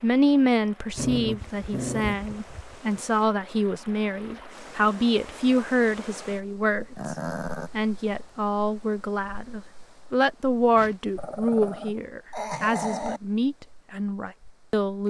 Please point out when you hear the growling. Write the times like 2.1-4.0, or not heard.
0.9-2.8, 7.0-7.7, 11.2-13.2.